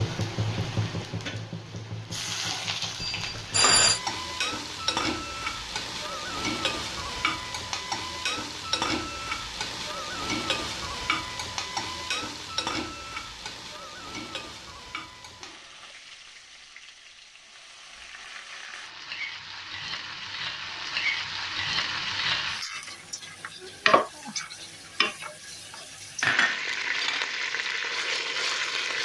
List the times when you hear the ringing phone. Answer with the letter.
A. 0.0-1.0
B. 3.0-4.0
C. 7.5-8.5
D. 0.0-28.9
B.